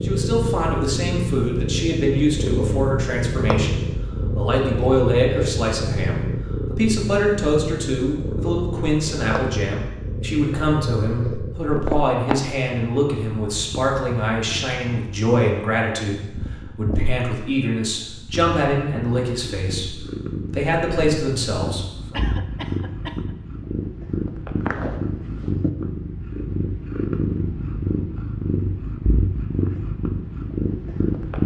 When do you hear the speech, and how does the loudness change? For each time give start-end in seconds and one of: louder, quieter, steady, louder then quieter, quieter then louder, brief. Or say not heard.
0.0-22.2 steady.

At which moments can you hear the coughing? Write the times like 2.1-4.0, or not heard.
22.1-23.3.